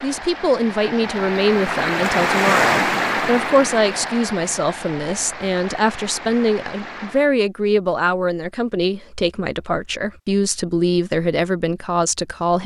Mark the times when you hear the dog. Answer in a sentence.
The dog can't be heard in this clip.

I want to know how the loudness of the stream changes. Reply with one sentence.
The loudness of the stream goes up, then down.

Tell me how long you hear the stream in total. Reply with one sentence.
The stream can be heard for 7 seconds in total.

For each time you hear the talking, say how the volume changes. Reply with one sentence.
The talking can be heard from 0.0 to 12.6 s, at a steady volume.